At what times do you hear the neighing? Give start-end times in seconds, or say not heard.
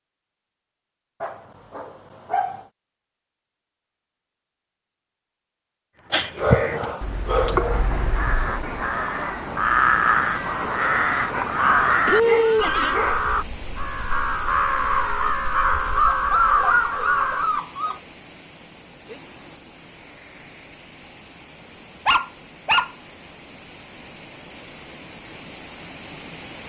12.1-13.0.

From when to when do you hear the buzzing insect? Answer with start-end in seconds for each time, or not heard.
not heard.